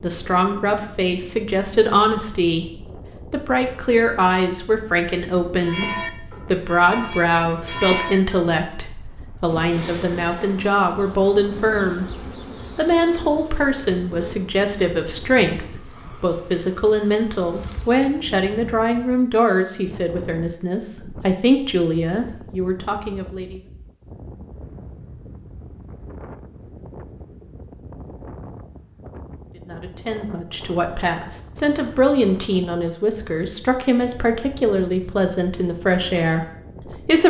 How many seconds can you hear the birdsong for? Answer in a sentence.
You can't hear the birdsong here.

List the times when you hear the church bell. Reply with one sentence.
You can hear the church bell from 5.6 to 8.5 s.